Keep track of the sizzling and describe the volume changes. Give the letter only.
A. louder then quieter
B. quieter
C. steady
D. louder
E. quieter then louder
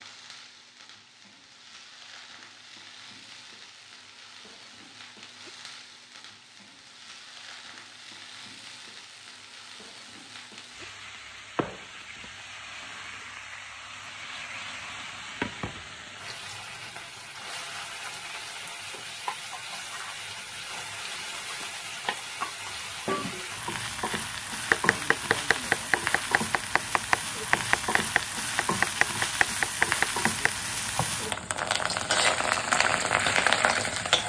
D.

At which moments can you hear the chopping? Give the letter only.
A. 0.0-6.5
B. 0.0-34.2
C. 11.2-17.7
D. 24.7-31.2
D.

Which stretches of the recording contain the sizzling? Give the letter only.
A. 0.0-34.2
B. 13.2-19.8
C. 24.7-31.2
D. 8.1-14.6
A.